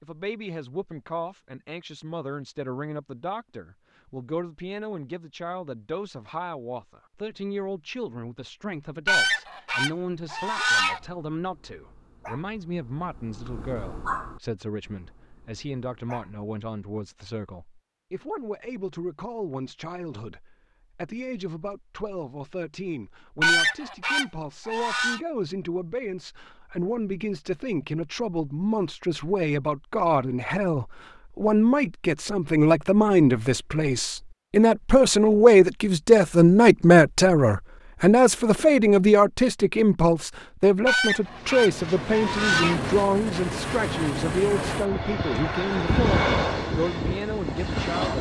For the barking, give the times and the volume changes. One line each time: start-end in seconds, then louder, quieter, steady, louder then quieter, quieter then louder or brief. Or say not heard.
10.2-16.5 louder then quieter.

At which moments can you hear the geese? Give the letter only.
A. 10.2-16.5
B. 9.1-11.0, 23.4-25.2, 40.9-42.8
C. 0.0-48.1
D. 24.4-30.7
B.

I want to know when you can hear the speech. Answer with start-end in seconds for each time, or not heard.
0.0-48.1.